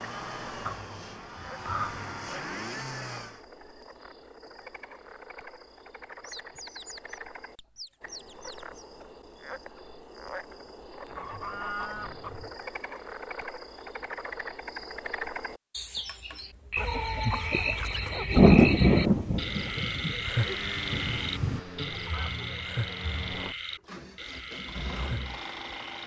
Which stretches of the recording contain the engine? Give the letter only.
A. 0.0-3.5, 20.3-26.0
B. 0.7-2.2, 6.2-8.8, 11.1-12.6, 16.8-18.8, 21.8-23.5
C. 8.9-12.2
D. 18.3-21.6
A.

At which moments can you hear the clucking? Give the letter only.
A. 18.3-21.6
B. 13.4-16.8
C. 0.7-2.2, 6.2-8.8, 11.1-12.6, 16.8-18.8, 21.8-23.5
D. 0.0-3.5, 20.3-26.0
C.